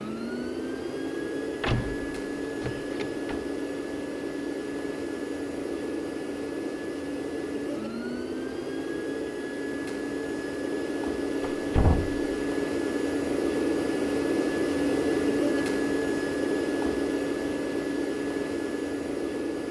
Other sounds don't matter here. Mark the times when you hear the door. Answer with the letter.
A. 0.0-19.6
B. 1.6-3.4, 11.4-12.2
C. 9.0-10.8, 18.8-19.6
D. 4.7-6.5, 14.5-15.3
B.